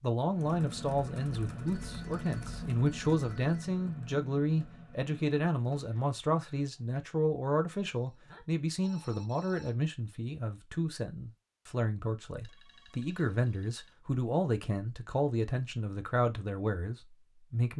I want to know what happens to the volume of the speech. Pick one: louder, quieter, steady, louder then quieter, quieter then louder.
steady.